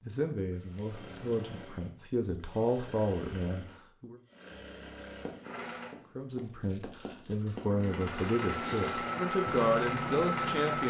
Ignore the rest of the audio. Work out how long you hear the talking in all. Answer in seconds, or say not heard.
9 s.